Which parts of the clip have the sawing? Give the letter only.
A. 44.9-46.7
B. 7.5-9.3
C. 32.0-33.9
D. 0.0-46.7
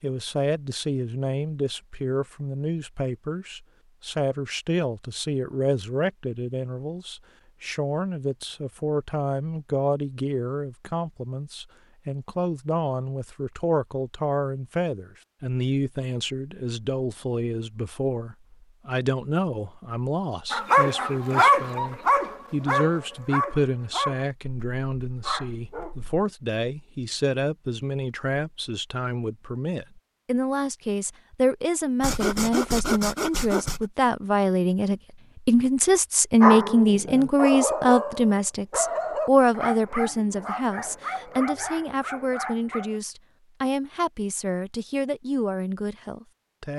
C.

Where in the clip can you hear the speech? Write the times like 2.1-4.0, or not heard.
0.0-46.7.